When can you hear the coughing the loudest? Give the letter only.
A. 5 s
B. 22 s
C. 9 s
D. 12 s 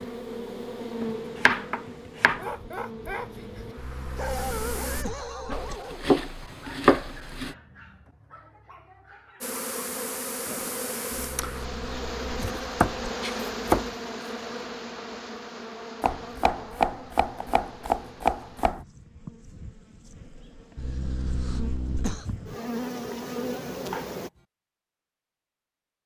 B.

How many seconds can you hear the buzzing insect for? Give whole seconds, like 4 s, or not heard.
20 s.